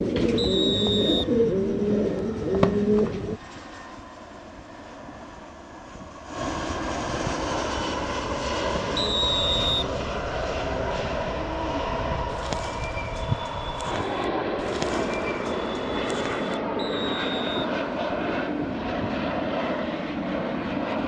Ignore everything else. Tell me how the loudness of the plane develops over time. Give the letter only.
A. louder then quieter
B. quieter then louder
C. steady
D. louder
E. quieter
D.